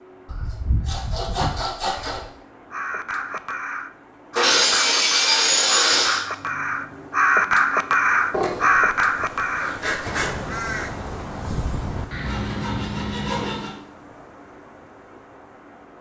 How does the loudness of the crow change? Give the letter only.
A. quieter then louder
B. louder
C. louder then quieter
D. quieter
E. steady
C.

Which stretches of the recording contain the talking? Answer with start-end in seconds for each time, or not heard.
not heard.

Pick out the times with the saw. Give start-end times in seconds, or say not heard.
0.2-2.2, 4.3-6.2, 8.3-10.3, 12.2-13.8.